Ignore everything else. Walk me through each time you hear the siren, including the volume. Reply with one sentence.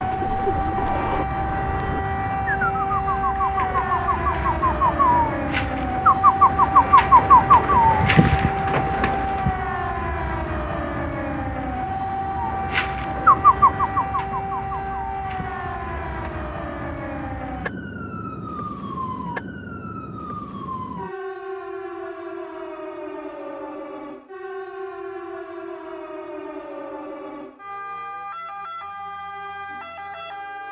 You can hear the siren from 0.0 to 30.6 s, getting quieter.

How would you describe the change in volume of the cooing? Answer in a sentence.
The volume of the cooing goes up, then down.